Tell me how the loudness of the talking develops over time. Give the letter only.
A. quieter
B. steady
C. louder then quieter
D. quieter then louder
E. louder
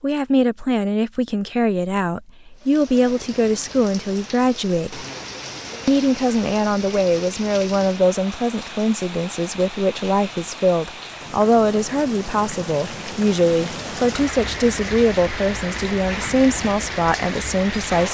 B.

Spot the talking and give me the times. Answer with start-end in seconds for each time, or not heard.
0.0-5.0, 5.8-18.0.